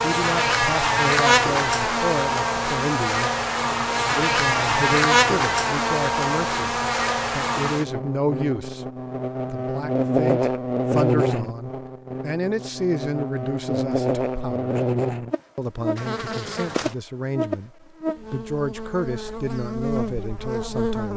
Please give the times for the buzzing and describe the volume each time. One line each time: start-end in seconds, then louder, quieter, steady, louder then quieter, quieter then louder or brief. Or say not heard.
0.0-21.1 quieter.